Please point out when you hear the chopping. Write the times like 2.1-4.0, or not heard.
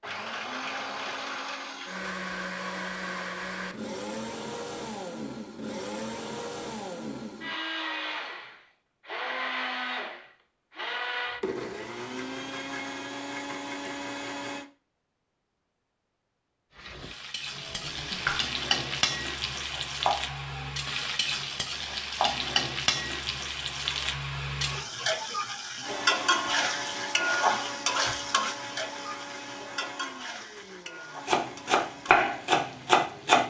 17.6-22.5, 31.2-33.4.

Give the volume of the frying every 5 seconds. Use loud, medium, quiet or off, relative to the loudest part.
off, off, off, loud, loud, loud, quiet.